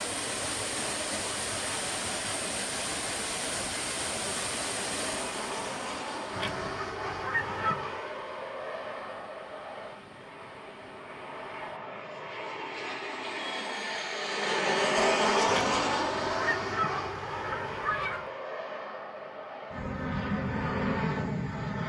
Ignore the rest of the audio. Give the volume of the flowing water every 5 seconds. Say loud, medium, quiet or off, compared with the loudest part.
loud, medium, quiet, off, off.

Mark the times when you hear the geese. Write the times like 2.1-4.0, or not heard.
6.3-8.0, 15.4-18.3.